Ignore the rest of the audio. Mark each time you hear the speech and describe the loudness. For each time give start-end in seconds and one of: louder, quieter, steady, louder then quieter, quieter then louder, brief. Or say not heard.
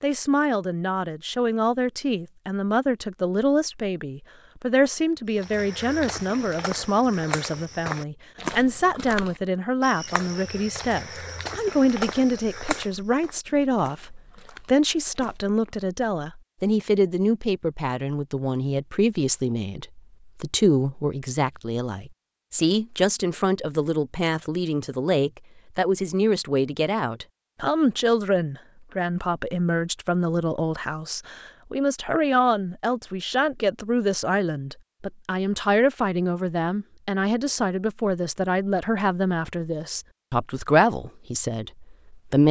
0.0-42.4 steady.